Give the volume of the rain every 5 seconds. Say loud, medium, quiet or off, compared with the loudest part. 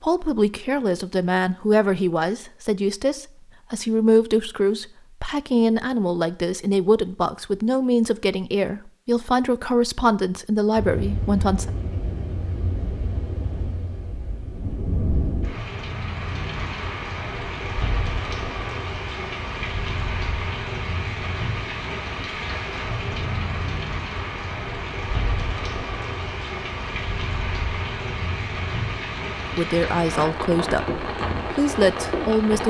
off, off, medium, loud, loud, loud, loud.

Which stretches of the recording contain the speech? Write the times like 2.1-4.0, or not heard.
0.0-11.7, 29.6-32.6.